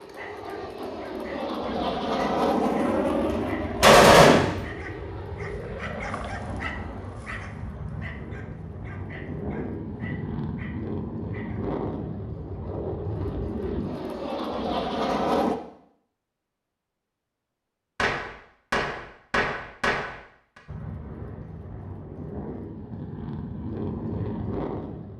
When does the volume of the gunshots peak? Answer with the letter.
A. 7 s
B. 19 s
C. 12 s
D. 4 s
D.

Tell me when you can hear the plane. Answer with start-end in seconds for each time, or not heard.
0.0-15.6, 20.6-25.1.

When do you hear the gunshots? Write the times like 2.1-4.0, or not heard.
3.3-4.7, 17.9-20.1.